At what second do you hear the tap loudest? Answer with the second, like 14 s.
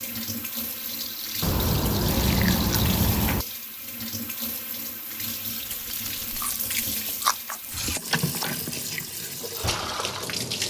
10 s.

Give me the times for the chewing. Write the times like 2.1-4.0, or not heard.
1.4-3.5, 6.2-8.6.